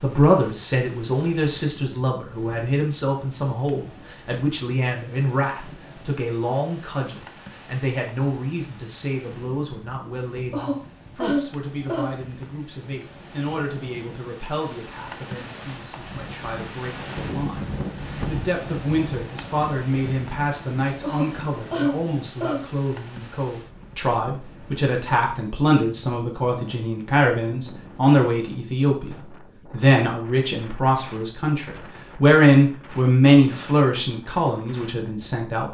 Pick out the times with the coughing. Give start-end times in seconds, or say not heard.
10.5-12.2, 21.0-22.6.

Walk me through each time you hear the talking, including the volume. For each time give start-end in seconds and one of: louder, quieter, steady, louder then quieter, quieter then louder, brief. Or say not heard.
0.0-17.6 quieter
18.2-35.7 louder.